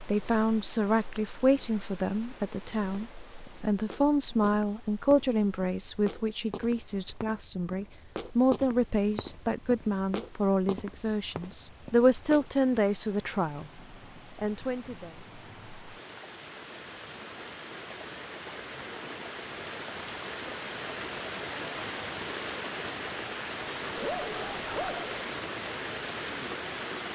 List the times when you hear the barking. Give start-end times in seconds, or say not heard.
23.9-25.2.